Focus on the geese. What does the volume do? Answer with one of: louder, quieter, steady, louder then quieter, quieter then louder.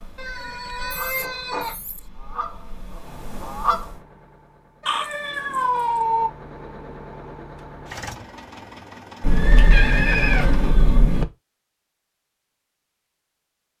quieter then louder.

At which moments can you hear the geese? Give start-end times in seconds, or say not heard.
0.0-4.0.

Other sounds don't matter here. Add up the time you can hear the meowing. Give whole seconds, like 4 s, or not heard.
5 s.